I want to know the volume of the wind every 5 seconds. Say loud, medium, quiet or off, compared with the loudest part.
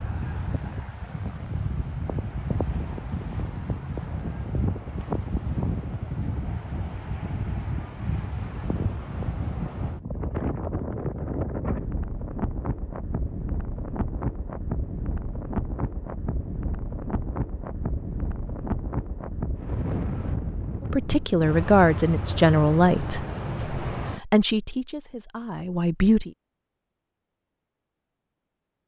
loud, loud, loud, loud, loud, off.